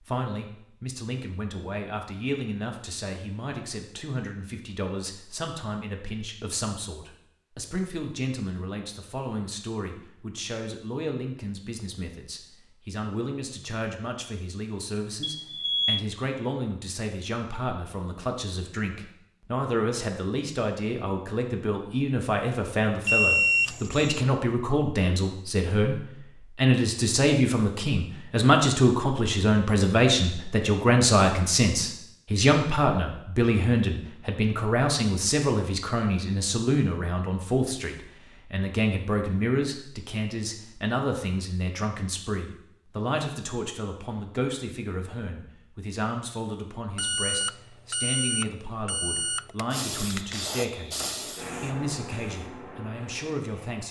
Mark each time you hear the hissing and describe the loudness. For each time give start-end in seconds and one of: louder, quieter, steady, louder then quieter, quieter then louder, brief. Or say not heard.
49.7-53.8 quieter.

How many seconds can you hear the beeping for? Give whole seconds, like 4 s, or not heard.
5 s.